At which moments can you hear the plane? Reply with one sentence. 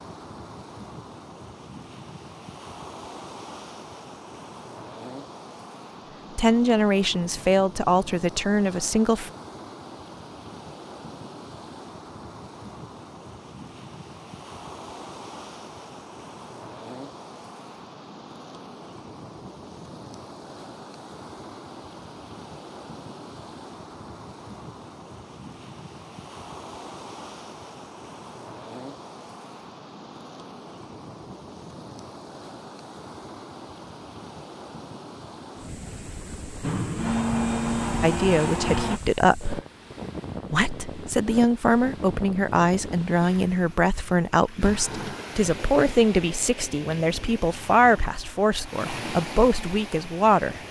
You can hear the plane from 36.6 to 39.0 s.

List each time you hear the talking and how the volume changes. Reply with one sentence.
The talking can be heard briefly from 6.3 to 9.3 s; briefly from 38.0 to 39.5 s; and from 40.5 to 50.5 s, at a steady volume.